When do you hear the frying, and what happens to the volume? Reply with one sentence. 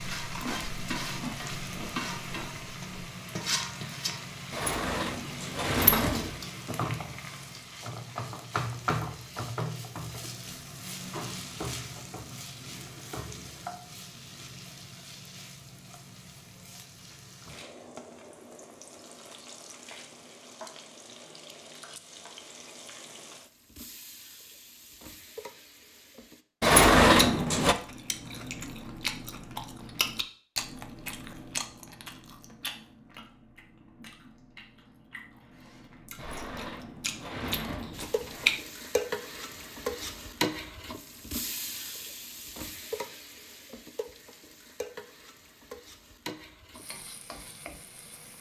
You can hear the frying from 0.0 to 26.4 s, getting quieter; and from 37.9 to 48.3 s, getting quieter.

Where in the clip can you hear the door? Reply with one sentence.
You can hear the door from 4.5 to 6.3 s, from 26.6 to 27.8 s and from 36.1 to 38.5 s.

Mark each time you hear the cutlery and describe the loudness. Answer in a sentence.
You can't hear the cutlery here.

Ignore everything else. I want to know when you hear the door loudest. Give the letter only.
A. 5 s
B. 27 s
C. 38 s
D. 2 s
B.